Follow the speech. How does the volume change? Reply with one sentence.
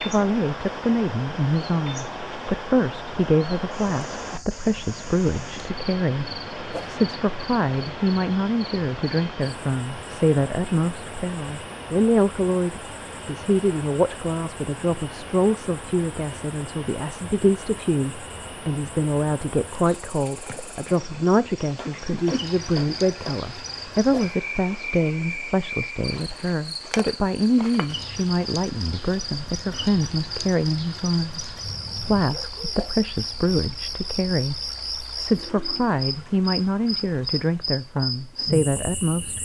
The volume of the speech stays about the same.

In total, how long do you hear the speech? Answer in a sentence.
You can hear the speech for 39 seconds altogether.